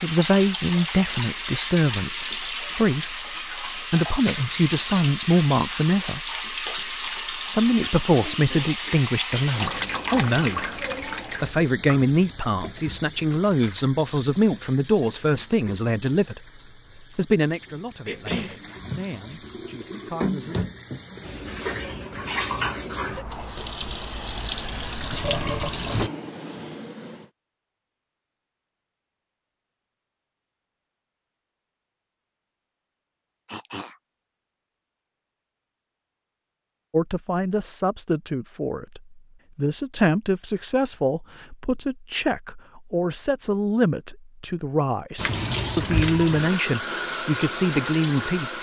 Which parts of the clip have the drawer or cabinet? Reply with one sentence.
The drawer or cabinet can be heard from 25.9 to 27.3 s.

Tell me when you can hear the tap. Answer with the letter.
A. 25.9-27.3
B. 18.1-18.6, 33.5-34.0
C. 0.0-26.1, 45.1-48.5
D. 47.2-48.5
C.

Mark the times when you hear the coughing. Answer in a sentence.
The coughing can be heard from 18.1 to 18.6 s and from 33.5 to 34.0 s.